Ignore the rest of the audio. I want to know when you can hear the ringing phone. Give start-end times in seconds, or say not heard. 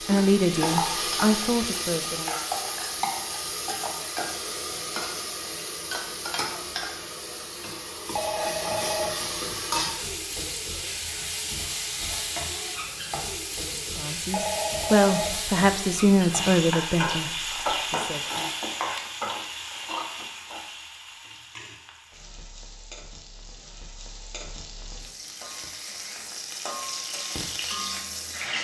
8.2-9.2, 14.3-15.4.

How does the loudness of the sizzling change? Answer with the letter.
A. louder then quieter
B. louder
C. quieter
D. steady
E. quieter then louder
C.